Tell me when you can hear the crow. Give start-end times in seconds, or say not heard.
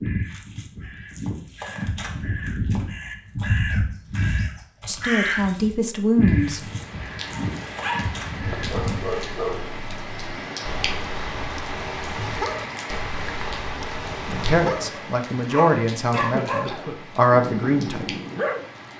0.0-9.6.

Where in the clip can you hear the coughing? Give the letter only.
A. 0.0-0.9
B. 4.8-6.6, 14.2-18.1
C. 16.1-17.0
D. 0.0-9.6
C.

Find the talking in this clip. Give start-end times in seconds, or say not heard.
4.8-6.6, 14.2-18.1.